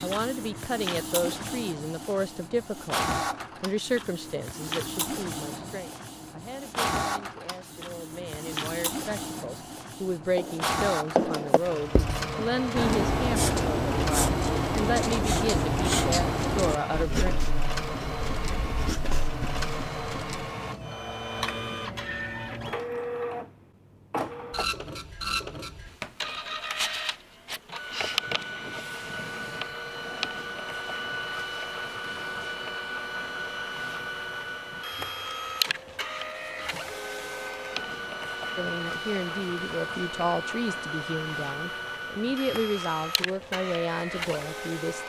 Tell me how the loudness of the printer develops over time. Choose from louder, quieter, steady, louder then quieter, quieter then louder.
steady.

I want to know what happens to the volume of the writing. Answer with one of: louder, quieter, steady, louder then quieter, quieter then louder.
quieter.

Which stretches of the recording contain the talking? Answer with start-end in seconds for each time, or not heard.
0.0-17.4, 38.5-45.0.